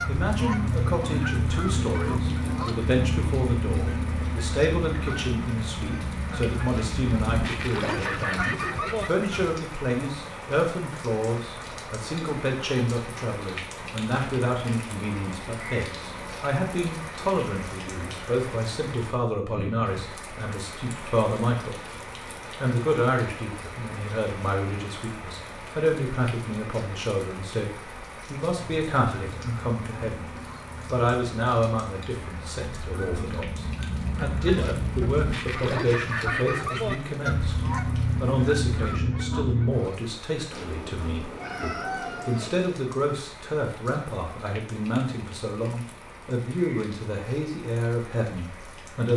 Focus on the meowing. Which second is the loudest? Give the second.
42 s.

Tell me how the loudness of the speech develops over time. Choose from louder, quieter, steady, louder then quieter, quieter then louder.
steady.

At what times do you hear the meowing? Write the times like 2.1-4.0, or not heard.
40.5-42.5.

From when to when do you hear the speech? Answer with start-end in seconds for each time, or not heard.
0.1-21.8, 22.6-49.1.